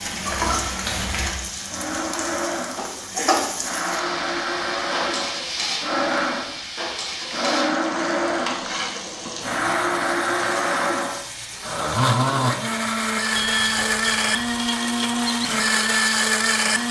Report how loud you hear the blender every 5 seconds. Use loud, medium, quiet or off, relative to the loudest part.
medium, loud, loud, loud.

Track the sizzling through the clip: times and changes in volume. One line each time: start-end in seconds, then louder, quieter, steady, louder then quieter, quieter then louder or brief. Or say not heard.
0.0-16.8 quieter.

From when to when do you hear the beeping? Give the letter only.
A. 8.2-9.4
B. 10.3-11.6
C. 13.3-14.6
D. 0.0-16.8
C.